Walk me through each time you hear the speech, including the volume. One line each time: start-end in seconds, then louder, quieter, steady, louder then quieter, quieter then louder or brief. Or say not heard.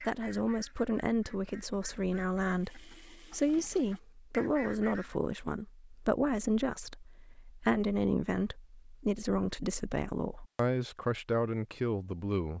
0.0-12.5 steady.